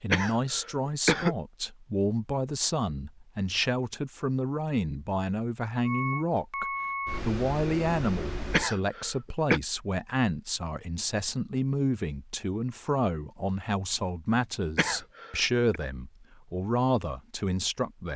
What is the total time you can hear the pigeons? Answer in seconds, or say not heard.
not heard.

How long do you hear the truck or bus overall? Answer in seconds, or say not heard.
3 s.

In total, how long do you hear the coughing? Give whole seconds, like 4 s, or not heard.
3 s.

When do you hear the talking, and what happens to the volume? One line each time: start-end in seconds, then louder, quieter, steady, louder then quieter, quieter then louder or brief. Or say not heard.
0.0-18.1 steady.